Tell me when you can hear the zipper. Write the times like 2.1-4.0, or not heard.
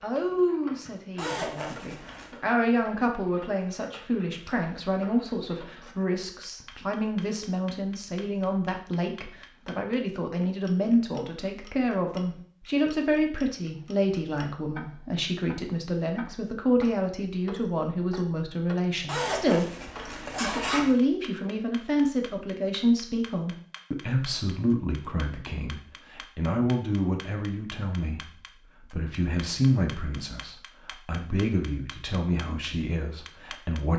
1.1-2.4, 19.1-20.9.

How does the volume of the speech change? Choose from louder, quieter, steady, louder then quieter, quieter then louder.
steady.